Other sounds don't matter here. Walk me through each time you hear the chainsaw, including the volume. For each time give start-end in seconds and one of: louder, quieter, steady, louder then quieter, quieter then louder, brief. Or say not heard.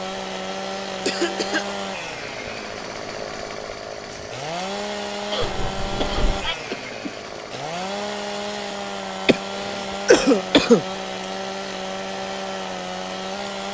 0.0-13.7 steady.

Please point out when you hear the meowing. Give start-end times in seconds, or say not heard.
5.4-6.5.